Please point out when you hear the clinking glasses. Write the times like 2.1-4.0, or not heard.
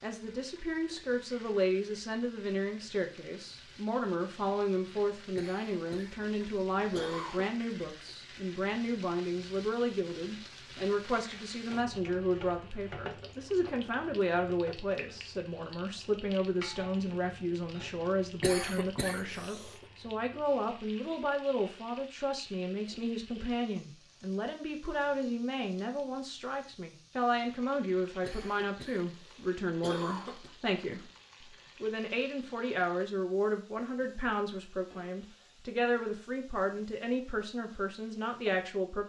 not heard.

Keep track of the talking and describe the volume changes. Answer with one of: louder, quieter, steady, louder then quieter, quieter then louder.
steady.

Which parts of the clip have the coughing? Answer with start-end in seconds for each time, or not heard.
5.3-7.5, 18.4-19.9, 28.2-30.5.